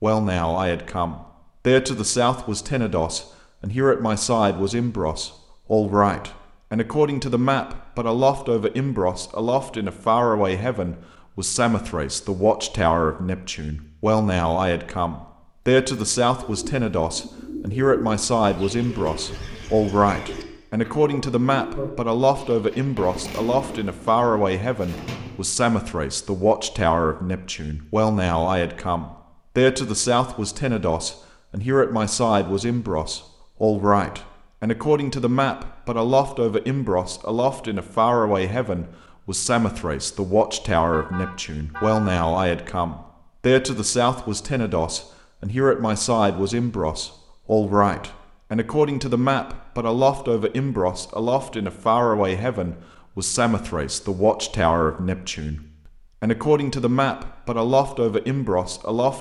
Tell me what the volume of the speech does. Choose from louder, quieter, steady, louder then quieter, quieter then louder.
steady.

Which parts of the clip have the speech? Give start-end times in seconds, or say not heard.
0.0-59.1.